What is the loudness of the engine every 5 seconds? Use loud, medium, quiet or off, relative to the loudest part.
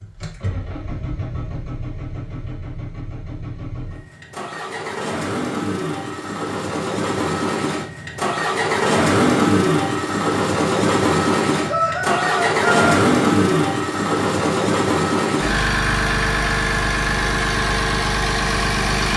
quiet, loud, loud, loud.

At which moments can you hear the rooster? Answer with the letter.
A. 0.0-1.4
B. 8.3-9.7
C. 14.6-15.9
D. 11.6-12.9
D.